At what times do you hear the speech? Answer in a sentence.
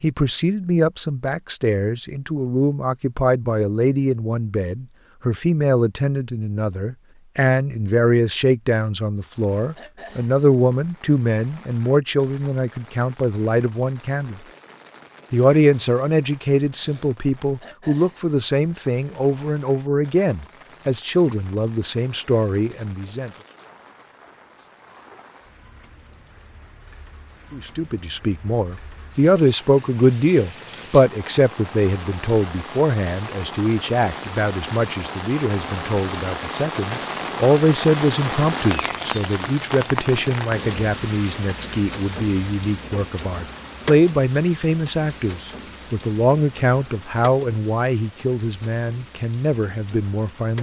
The speech can be heard from 0.0 to 14.4 s, from 15.3 to 23.3 s and from 27.5 to 50.5 s.